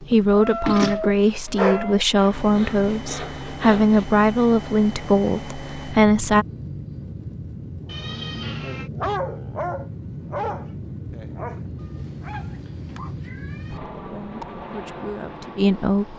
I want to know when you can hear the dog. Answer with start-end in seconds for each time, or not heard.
0.0-2.0, 7.8-13.2.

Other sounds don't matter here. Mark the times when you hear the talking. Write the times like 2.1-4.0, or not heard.
0.0-6.5, 14.1-16.1.